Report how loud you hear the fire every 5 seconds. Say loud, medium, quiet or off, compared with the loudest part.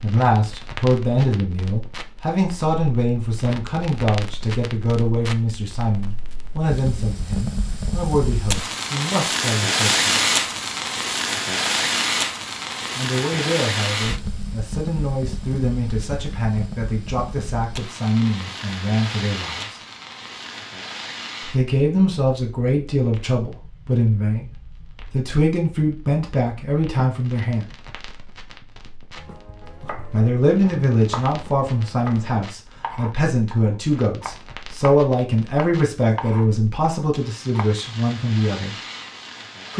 quiet, loud, loud, medium, quiet, quiet, quiet, quiet.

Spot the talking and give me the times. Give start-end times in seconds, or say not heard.
0.0-10.4, 12.9-19.8, 21.5-24.5, 25.1-27.6, 30.1-38.8.